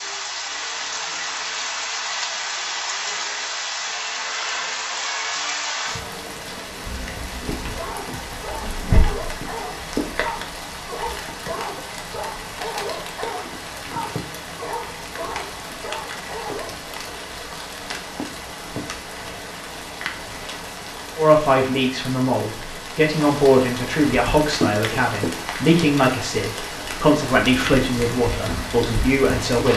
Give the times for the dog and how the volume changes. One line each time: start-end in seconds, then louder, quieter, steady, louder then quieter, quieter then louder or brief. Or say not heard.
7.7-16.9 steady.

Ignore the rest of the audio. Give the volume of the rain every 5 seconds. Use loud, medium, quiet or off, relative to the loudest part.
loud, loud, medium, medium, loud, loud.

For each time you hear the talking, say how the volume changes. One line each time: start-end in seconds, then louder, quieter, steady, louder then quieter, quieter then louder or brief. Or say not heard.
21.1-29.7 steady.